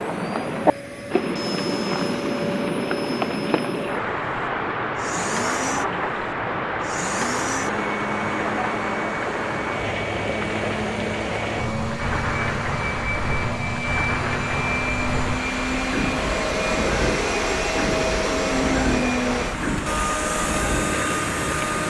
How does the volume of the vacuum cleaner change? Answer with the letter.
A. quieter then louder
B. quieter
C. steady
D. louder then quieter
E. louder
E.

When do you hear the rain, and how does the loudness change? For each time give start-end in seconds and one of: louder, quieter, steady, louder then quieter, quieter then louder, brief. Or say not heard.
0.0-21.8 steady.